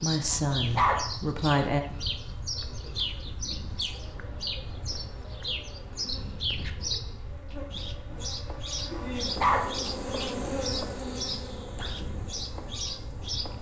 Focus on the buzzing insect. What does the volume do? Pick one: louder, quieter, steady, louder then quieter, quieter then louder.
louder then quieter.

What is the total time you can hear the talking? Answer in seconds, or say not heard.
2 s.